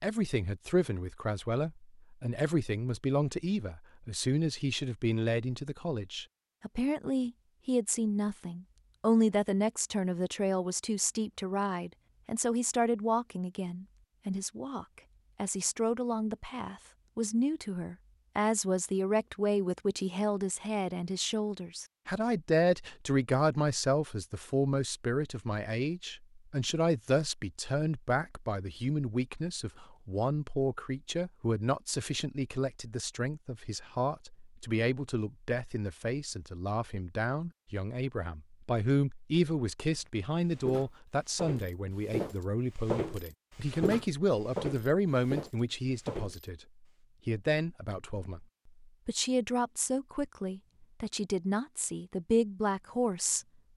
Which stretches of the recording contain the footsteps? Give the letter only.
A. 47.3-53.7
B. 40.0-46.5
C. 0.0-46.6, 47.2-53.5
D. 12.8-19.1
B.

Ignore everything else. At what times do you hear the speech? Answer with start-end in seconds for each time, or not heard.
0.0-46.6, 47.2-53.5.